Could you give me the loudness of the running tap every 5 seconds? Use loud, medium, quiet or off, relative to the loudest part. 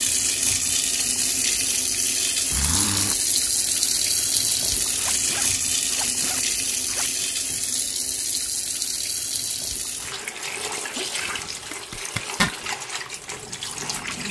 loud, loud, medium.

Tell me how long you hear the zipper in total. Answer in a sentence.
You can hear the zipper for 4 seconds altogether.